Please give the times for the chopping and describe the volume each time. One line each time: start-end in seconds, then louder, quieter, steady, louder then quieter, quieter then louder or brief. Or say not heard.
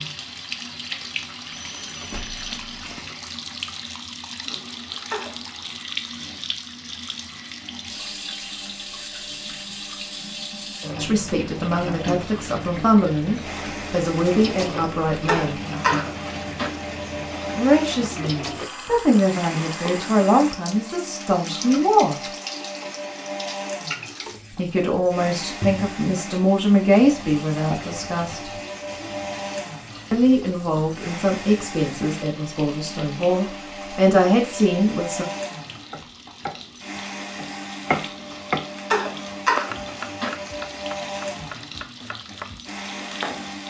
35.7-43.5 louder then quieter.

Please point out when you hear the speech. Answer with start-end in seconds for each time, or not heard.
10.9-15.6, 17.6-22.2, 24.6-28.5, 30.1-35.2.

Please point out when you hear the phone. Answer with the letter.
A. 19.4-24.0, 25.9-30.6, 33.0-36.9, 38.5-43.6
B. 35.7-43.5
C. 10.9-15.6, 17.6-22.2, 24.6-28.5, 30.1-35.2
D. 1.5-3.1
D.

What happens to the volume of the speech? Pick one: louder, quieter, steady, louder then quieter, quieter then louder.
steady.